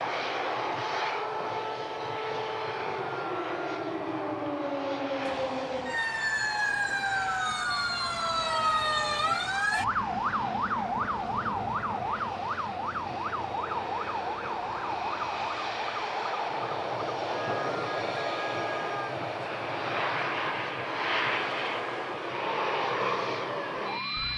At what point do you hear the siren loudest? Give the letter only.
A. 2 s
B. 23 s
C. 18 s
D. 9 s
D.